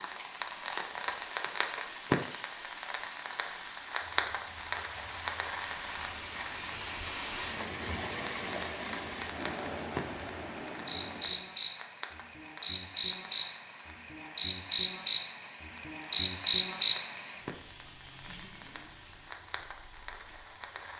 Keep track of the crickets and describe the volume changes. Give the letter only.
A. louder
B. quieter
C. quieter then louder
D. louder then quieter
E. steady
D.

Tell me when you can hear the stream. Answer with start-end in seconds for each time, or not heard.
0.0-11.6.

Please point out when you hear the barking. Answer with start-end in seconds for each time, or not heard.
not heard.